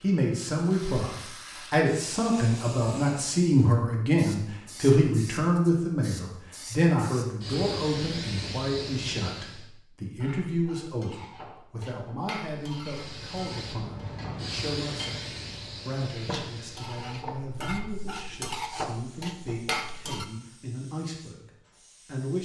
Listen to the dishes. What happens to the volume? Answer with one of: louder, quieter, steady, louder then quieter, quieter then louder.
louder.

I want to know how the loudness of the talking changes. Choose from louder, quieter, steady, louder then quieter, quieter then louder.
quieter.